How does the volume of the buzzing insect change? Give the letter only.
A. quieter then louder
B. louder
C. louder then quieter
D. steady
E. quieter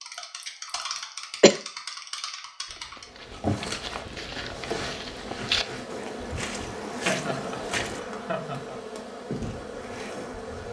D.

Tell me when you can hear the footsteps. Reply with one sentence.
You can hear the footsteps from 2.6 to 8.0 s.